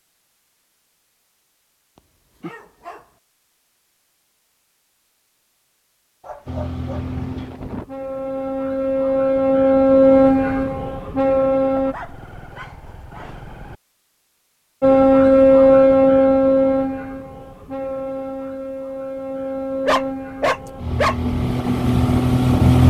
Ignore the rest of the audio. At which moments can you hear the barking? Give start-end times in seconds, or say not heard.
2.4-3.0, 6.2-7.5, 11.8-13.8, 19.9-21.1.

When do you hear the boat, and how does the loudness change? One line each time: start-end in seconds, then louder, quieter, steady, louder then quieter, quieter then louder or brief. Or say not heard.
6.5-11.9 louder then quieter
14.8-22.8 quieter then louder.